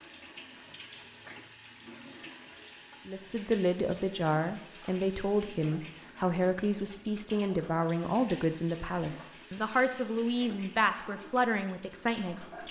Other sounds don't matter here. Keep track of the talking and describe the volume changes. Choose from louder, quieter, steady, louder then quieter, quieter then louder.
steady.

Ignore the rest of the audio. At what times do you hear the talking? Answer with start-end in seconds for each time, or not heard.
3.0-12.6.